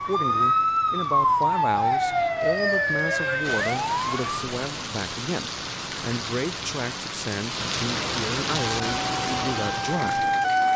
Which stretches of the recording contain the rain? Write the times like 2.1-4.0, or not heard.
3.4-10.7.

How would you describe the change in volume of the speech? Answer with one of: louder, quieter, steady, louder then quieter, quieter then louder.
steady.